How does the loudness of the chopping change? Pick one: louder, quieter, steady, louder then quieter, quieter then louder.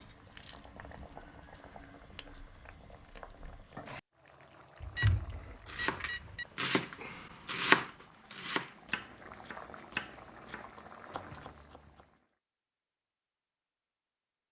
louder then quieter.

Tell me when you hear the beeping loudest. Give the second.
5 s.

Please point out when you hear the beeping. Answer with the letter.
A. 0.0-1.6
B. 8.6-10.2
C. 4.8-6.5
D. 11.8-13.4
C.